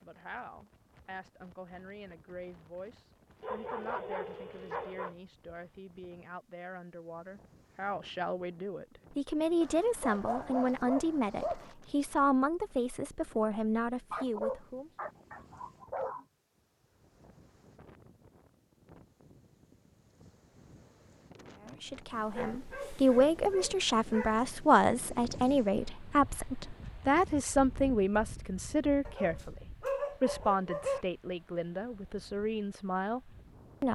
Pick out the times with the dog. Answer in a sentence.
You can hear the dog from 3.4 to 5.2 s, from 9.6 to 11.8 s, from 14.1 to 16.2 s, from 22.1 to 24.4 s and from 29.1 to 31.1 s.